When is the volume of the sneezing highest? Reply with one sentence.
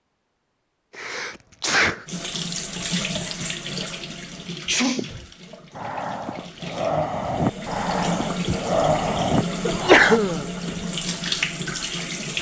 The volume of the sneezing peaks at 10 seconds.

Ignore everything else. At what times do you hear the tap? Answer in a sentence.
The tap can be heard from 2.0 to 12.3 s.